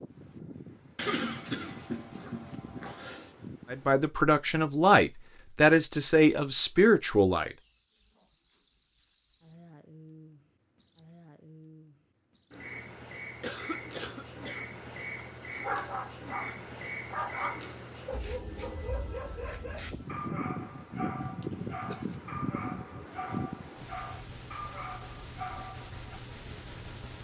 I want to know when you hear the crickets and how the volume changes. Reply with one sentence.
The crickets can be heard from 0.0 to 27.1 s, getting louder.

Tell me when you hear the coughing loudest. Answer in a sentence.
The loudest moment of the coughing is at 1 second.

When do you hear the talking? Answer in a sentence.
The talking can be heard from 3.7 to 7.5 s.